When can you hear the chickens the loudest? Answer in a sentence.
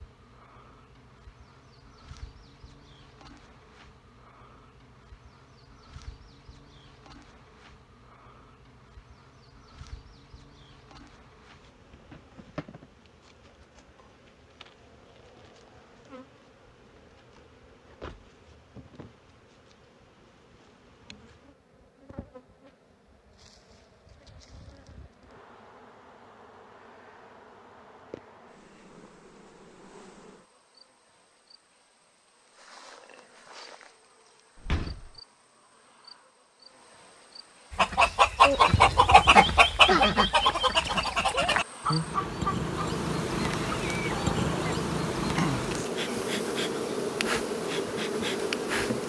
The loudest moment of the chickens is at 39 seconds.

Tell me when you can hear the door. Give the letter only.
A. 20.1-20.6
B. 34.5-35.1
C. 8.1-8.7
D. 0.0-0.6
B.